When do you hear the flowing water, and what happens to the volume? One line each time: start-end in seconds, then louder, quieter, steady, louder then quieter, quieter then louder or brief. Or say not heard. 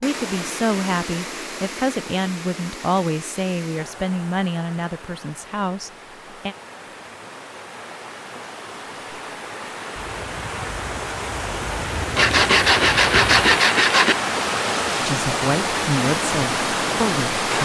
0.0-17.6 quieter then louder.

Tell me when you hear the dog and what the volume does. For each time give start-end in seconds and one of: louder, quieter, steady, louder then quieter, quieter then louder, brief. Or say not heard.
not heard.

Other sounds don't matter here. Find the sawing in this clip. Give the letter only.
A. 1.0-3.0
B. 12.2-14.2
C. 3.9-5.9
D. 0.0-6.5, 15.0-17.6
B.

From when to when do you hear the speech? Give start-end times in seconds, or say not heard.
0.0-6.5, 15.0-17.6.